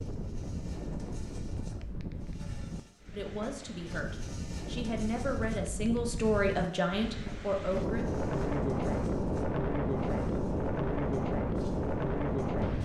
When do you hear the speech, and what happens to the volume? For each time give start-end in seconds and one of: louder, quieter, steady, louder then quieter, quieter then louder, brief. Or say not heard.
3.1-8.1 louder.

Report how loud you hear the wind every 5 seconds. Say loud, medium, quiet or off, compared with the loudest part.
medium, loud, loud.